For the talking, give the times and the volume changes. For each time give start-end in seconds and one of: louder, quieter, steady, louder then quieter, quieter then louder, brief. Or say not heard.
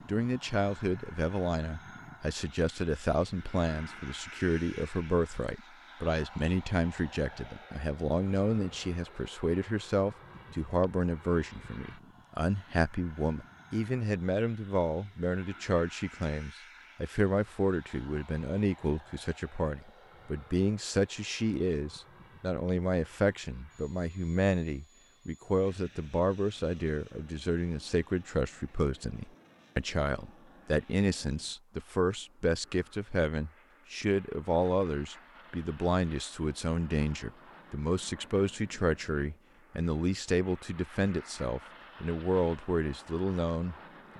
0.1-44.1 steady.